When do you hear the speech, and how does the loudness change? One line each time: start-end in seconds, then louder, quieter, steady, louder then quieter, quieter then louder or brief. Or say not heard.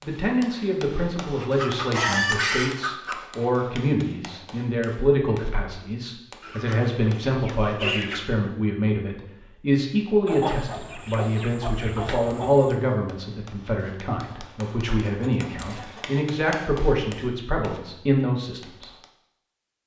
0.0-18.9 steady.